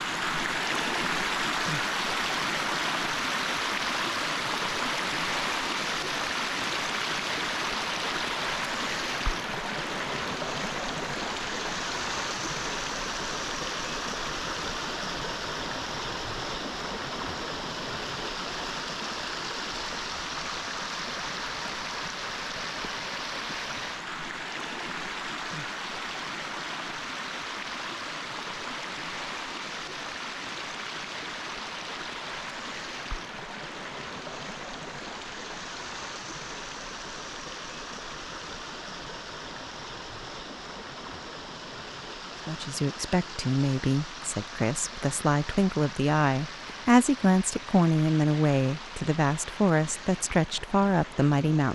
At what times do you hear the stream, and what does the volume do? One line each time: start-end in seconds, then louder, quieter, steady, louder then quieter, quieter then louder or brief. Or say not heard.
0.0-51.6 quieter.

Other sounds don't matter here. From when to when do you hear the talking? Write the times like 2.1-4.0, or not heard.
42.5-51.6.